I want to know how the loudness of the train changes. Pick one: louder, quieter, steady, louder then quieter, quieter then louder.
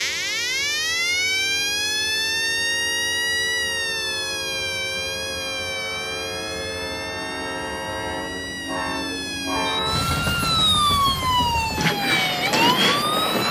louder.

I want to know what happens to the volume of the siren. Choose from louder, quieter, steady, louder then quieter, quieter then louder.
quieter then louder.